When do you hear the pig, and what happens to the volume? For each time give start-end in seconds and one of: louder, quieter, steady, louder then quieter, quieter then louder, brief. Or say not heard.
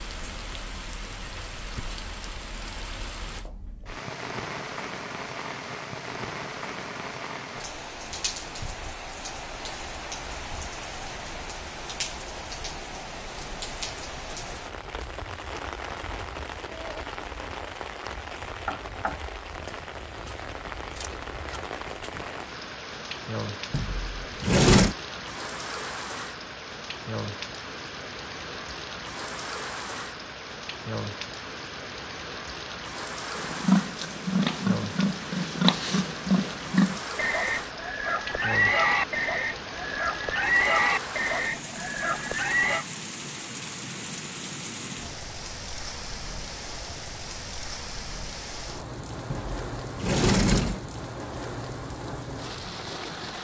33.4-42.9 steady.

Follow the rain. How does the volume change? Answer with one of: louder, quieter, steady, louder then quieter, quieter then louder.
steady.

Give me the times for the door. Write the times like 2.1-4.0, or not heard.
23.7-24.9, 49.3-50.8.